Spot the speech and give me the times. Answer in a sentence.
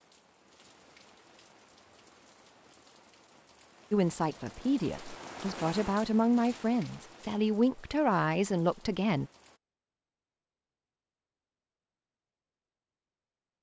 You can hear the speech from 3.9 to 9.3 s.